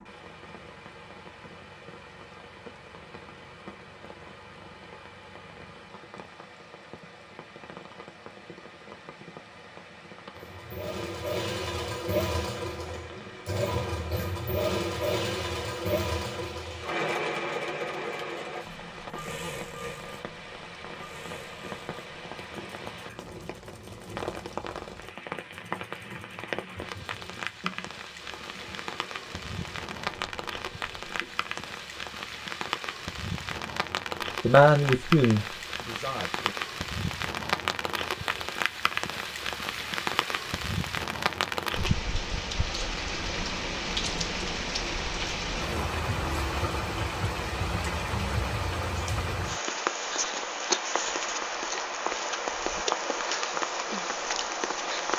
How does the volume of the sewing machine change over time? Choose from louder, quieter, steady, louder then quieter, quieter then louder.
quieter.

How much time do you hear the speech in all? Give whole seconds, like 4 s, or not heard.
2 s.